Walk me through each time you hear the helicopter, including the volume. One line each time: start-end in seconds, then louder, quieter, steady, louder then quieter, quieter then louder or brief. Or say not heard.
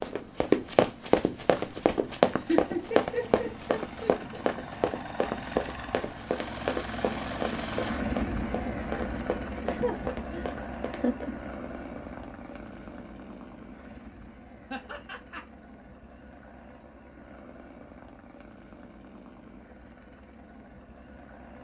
0.0-21.5 louder then quieter.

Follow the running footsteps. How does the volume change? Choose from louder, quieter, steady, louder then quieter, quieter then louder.
quieter.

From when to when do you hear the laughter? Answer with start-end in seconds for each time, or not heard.
2.5-4.5, 9.6-11.3, 14.7-15.4.